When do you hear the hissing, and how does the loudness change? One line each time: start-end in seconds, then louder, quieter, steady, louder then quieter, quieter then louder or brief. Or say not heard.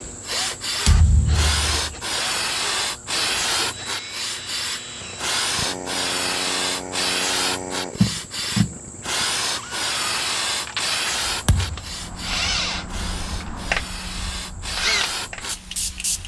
0.0-16.2 quieter.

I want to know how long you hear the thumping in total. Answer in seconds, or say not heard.
2 s.